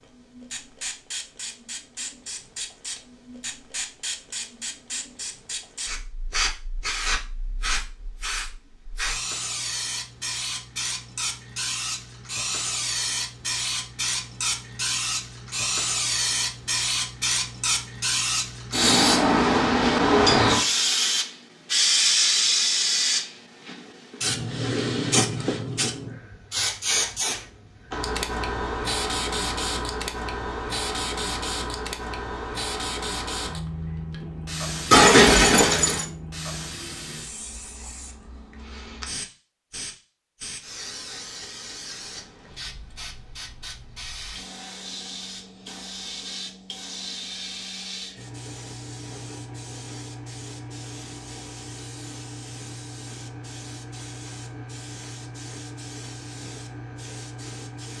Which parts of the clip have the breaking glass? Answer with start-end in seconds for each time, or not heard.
34.9-36.0.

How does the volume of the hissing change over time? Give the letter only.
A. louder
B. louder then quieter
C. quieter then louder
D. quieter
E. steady
B.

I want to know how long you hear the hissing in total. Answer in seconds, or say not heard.
58 s.